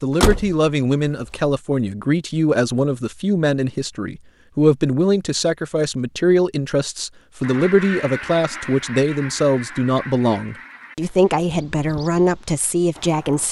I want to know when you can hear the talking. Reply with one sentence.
The talking can be heard from 0.0 to 13.4 s.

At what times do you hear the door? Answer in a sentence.
You can hear the door from 0.2 to 1.5 s.